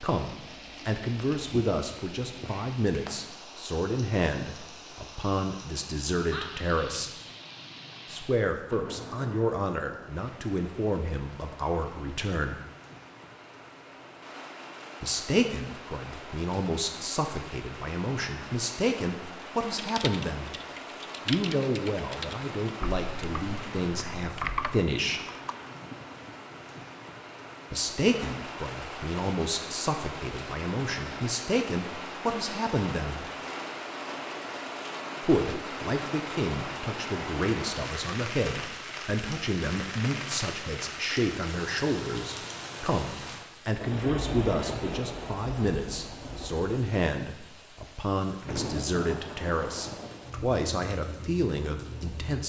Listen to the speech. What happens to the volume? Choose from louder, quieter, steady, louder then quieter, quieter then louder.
steady.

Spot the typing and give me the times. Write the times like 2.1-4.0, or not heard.
19.8-25.7.